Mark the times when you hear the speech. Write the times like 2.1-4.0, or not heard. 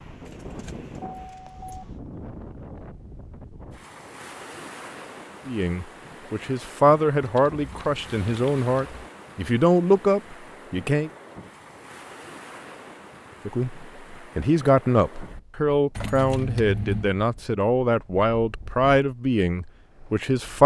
5.5-11.1, 13.4-20.6.